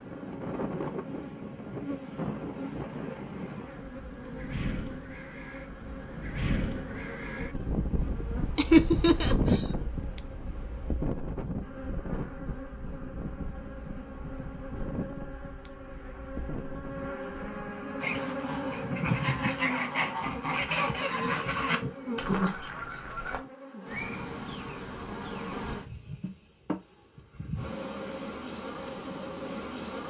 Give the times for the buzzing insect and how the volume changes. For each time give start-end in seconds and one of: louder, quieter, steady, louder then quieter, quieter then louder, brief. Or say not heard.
0.0-30.0 louder.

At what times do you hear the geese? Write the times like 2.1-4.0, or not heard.
18.0-23.4.